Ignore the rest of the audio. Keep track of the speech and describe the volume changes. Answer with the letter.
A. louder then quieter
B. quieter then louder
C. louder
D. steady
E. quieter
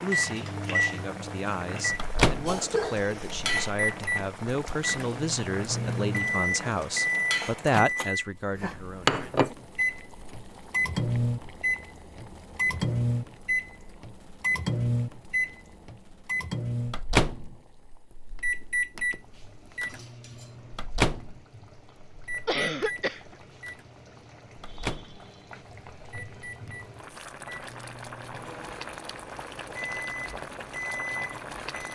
C.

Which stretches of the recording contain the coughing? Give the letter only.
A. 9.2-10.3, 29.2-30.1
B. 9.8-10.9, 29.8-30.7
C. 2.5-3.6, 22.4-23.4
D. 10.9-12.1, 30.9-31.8
C.